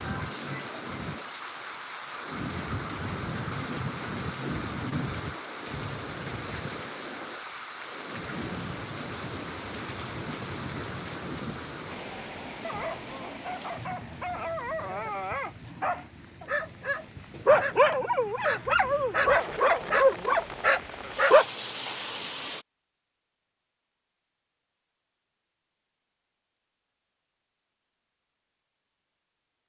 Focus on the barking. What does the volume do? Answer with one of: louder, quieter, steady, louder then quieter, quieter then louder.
louder.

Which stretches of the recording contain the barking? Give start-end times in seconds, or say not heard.
12.6-21.4.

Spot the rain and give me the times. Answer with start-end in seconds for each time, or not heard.
0.0-22.6.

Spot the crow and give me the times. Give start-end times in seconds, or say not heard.
not heard.